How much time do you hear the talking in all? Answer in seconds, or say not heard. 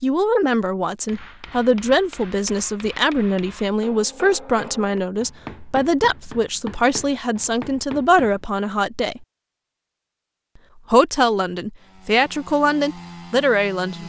12 s.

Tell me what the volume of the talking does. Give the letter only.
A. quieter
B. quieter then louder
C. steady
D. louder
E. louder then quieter
C.